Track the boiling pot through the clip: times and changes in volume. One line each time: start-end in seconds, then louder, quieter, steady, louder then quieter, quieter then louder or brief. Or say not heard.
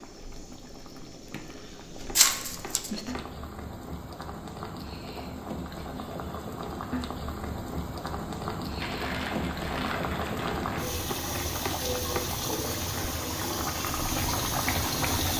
0.0-15.3 louder.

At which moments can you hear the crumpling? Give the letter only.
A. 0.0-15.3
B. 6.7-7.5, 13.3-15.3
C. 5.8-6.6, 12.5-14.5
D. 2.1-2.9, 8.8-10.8
D.